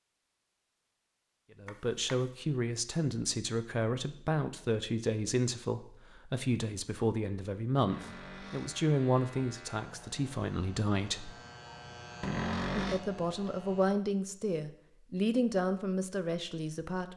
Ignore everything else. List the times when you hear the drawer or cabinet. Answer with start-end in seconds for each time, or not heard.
1.6-2.2, 7.8-8.8, 12.2-13.0.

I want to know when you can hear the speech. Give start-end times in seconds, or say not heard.
1.6-11.3, 12.8-17.1.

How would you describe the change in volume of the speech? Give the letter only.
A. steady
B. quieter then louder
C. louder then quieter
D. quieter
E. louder
A.